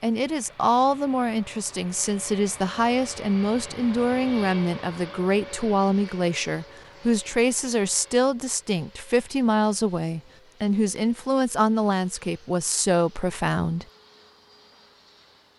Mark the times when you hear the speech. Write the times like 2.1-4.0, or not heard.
0.0-13.8.